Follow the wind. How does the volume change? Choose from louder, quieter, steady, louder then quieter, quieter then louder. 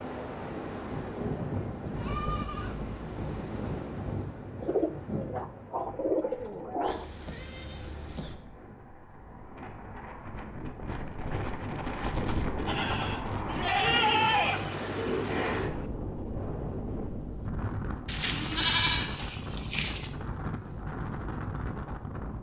quieter then louder.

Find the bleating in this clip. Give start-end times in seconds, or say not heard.
1.9-3.7, 6.8-8.4, 12.7-14.6, 18.1-20.1.